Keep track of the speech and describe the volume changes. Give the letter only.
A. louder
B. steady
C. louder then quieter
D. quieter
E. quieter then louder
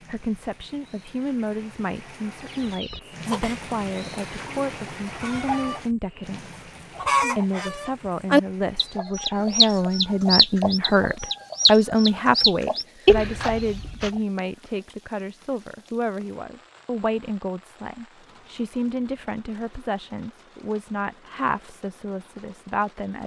C.